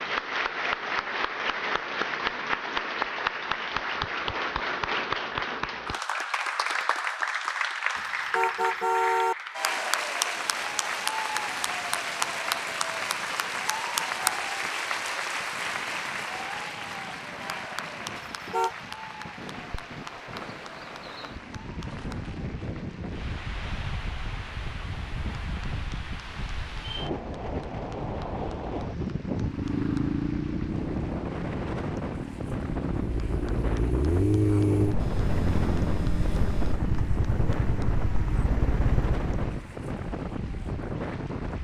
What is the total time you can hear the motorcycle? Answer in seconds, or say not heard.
10 s.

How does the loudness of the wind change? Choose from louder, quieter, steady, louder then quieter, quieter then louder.
louder.